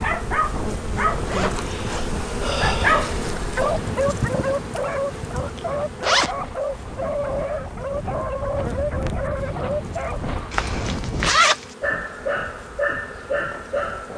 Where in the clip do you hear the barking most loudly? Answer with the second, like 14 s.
3 s.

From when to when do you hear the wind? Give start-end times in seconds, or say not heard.
0.0-11.4.